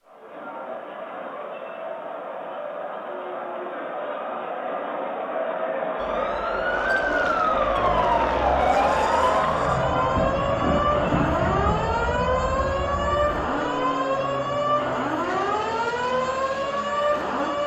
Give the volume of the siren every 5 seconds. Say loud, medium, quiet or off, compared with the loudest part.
off, loud, loud, loud.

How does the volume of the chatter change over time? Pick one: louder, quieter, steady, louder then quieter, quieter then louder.
louder then quieter.